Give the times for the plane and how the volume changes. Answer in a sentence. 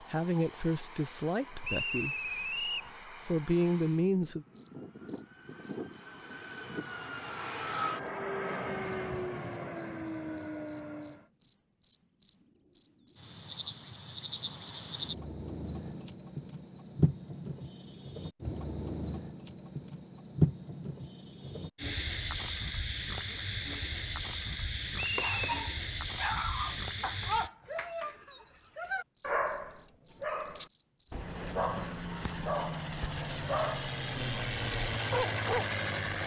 The plane can be heard from 0.0 to 11.3 s, getting louder; and from 31.1 to 36.2 s, getting louder.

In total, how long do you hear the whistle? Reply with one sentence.
The whistle can be heard for 2 seconds in total.